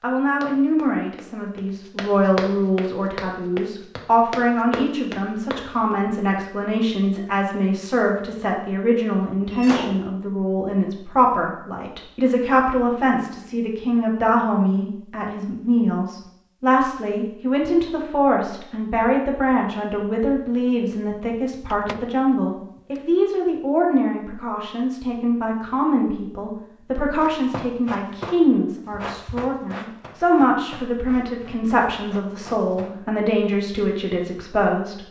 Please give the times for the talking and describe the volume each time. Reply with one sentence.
You can hear the talking from 0.0 to 35.0 s, at a steady volume.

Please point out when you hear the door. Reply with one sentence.
You can hear the door from 9.5 to 10.1 s and from 21.3 to 22.1 s.